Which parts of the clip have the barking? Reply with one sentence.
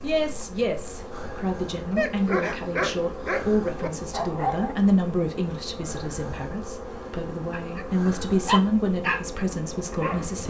You can hear the barking from 1.9 to 4.8 s and from 7.5 to 10.4 s.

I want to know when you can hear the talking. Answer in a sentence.
You can hear the talking from 0.0 to 10.4 s.